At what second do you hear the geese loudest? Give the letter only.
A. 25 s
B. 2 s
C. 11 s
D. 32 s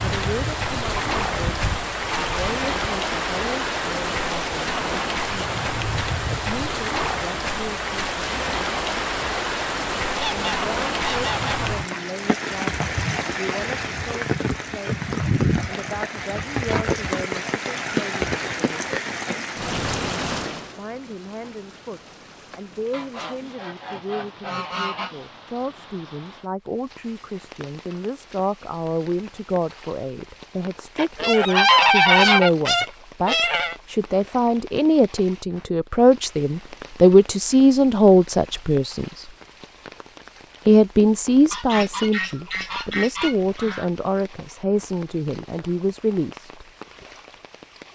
D.